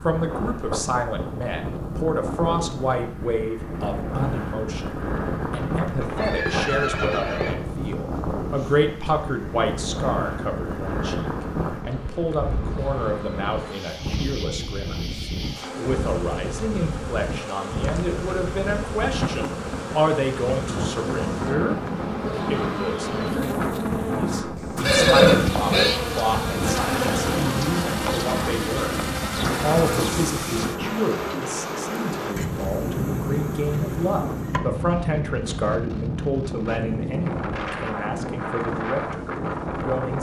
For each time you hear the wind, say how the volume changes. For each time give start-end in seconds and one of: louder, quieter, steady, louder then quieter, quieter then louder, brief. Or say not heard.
0.0-40.1 steady.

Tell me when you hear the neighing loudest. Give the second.
25 s.